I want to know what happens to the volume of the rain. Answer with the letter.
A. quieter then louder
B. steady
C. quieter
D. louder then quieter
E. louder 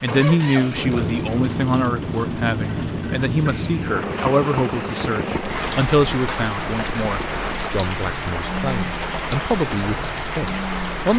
E.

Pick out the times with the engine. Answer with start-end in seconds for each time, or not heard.
0.0-10.9.